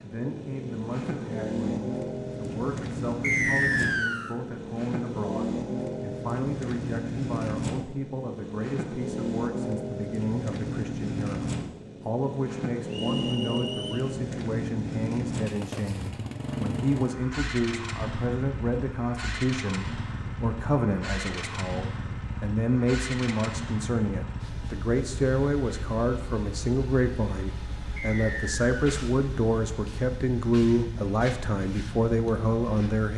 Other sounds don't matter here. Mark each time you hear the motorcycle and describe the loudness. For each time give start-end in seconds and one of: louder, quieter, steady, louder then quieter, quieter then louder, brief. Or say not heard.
0.0-33.1 quieter.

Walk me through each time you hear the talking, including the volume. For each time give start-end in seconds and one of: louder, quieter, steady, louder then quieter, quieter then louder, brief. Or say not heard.
0.0-33.1 louder.